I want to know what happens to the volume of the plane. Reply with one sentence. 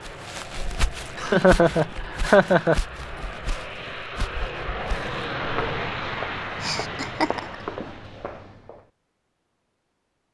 The volume of the plane goes up, then down.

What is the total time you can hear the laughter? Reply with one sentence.
You can hear the laughter for 3 seconds altogether.